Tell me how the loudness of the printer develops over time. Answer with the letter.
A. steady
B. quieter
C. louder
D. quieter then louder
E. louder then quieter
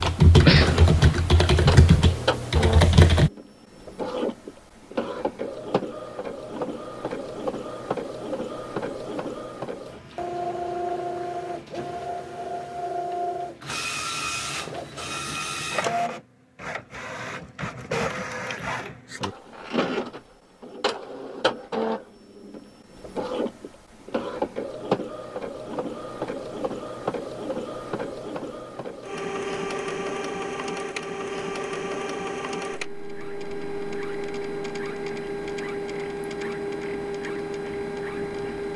A.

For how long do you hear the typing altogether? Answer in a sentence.
The typing can be heard for 3 seconds in total.